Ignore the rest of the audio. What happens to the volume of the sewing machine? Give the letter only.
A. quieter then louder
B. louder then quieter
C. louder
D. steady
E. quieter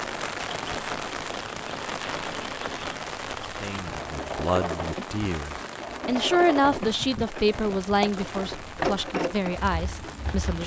C.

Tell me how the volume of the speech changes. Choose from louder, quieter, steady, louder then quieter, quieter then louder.
louder then quieter.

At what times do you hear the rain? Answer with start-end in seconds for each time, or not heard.
0.0-10.6.